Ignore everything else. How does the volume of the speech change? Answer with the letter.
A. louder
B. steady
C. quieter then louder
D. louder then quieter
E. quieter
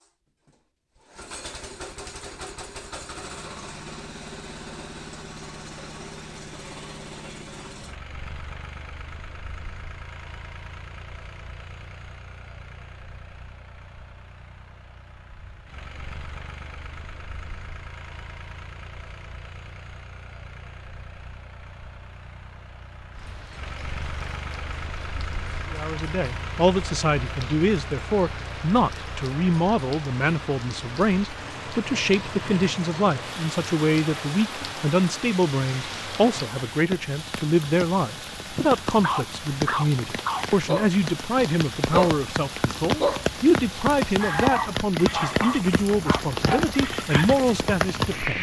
B.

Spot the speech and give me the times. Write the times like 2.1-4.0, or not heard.
25.7-48.3.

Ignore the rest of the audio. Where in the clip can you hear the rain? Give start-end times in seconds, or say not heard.
23.1-48.3.